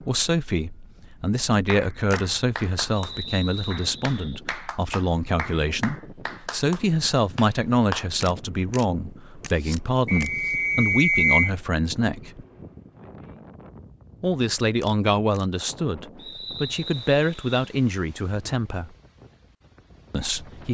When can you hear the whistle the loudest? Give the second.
11 s.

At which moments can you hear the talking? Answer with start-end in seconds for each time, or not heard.
0.1-12.4, 14.2-18.9, 20.1-20.6.